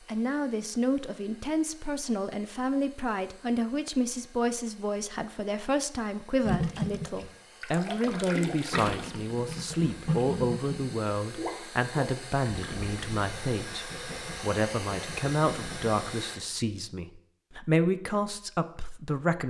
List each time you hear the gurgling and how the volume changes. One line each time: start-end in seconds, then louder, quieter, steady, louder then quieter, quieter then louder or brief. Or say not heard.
6.5-16.1 quieter.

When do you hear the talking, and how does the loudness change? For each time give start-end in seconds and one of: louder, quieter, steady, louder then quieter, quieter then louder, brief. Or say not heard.
0.1-19.4 steady.